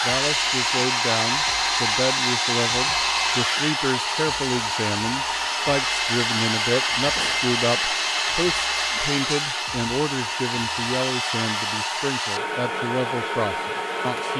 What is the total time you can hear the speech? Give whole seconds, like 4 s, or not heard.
14 s.